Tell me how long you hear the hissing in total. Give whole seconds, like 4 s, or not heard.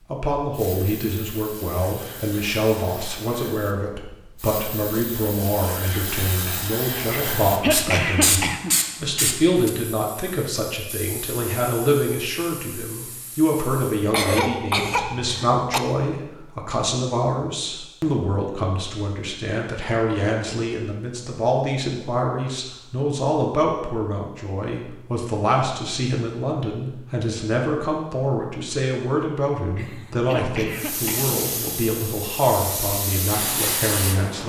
17 s.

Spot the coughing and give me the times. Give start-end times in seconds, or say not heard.
7.1-8.8, 14.1-15.8, 29.8-31.4.